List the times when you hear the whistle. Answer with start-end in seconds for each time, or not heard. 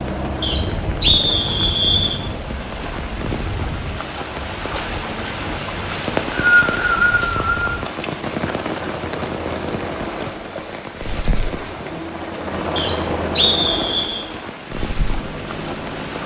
0.4-2.1, 5.9-7.8, 12.8-14.2.